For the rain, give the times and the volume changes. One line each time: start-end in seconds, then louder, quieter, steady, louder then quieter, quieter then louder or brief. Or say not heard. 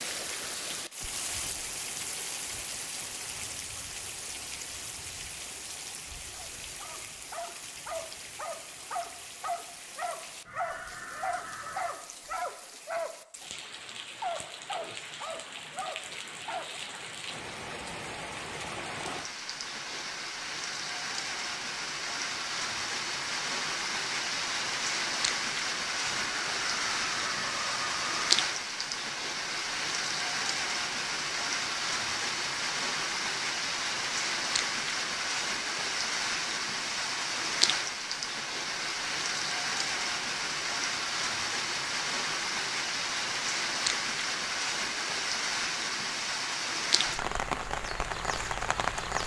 0.0-49.2 louder.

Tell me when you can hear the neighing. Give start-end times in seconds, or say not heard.
10.4-12.0, 26.1-28.4.